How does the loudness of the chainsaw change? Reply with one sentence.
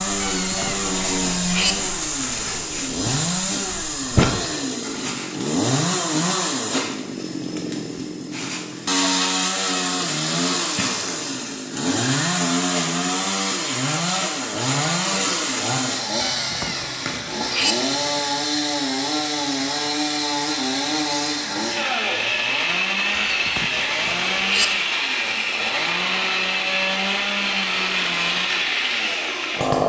The volume of the chainsaw stays about the same.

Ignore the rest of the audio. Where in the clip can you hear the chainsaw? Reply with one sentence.
The chainsaw can be heard from 0.0 to 29.8 s.